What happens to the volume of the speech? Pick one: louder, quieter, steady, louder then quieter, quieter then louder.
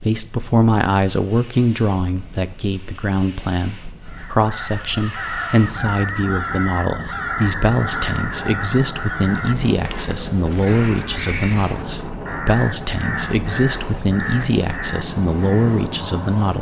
steady.